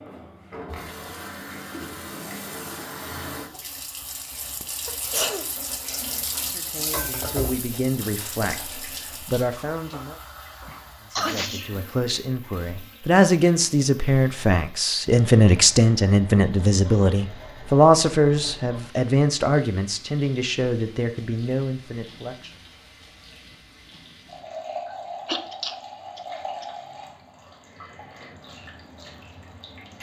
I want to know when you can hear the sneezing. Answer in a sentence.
You can hear the sneezing from 4.2 to 6.3 s, from 10.7 to 11.8 s and from 25.2 to 26.6 s.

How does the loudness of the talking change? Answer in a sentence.
The volume of the talking goes up, then down.